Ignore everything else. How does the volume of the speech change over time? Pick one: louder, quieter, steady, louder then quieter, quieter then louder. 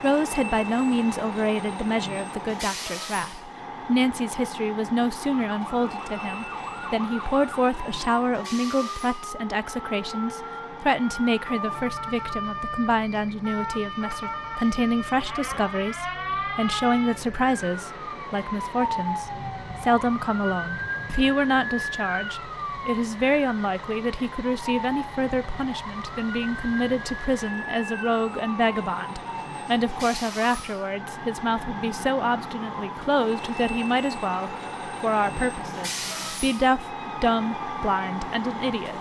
steady.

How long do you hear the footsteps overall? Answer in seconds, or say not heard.
not heard.